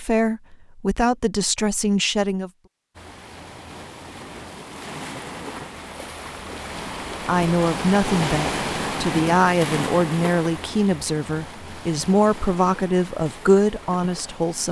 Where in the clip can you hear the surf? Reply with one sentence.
You can hear the surf from 3.0 to 14.6 s.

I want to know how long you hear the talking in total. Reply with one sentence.
You can hear the talking for 10 seconds altogether.